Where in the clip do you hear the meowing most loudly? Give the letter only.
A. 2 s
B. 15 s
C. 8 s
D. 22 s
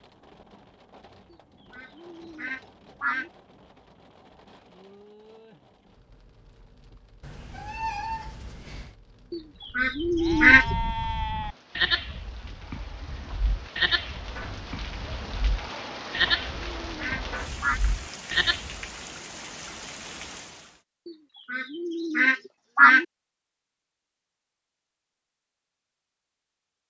C.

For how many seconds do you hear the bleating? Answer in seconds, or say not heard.
9 s.